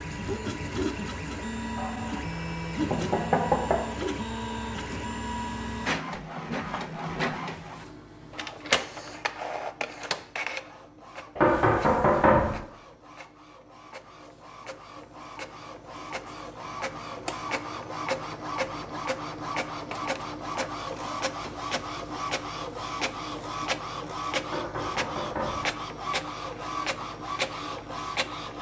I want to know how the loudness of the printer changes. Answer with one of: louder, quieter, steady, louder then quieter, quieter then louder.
quieter then louder.